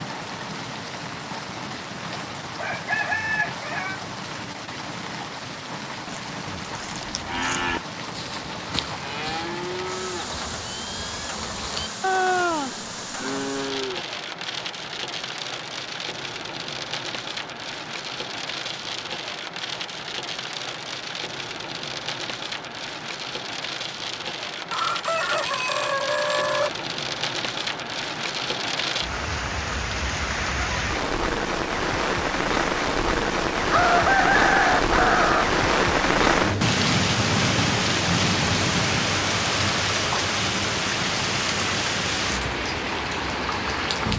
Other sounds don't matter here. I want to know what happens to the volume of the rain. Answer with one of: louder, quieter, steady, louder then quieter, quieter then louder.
louder.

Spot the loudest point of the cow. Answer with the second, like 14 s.
12 s.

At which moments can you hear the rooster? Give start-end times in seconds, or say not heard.
2.1-4.0, 24.7-26.7, 33.7-35.5.